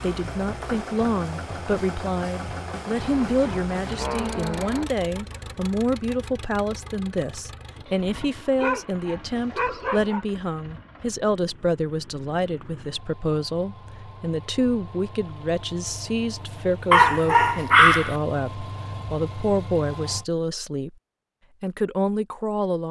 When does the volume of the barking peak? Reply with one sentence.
The volume of the barking peaks at 18 seconds.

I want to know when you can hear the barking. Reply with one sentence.
The barking can be heard from 3.0 to 4.8 s, from 8.6 to 10.2 s and from 16.9 to 18.1 s.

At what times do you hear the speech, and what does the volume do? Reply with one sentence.
You can hear the speech from 0.0 to 20.9 s, at a steady volume; and briefly from 21.6 to 22.8 s.